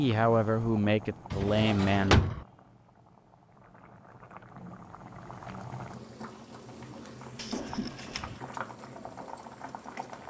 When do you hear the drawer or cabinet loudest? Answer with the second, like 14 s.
2 s.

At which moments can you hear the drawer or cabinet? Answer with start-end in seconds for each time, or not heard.
1.3-2.5, 7.3-8.4.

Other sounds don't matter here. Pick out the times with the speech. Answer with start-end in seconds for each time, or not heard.
0.0-2.2.